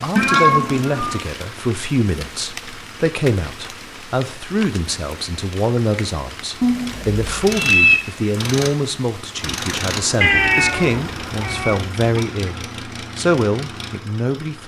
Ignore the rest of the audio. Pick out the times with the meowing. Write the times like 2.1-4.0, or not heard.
0.1-1.2, 6.6-8.0, 10.2-12.2.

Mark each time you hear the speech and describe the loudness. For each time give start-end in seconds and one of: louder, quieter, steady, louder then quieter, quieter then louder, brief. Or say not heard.
0.0-14.6 steady.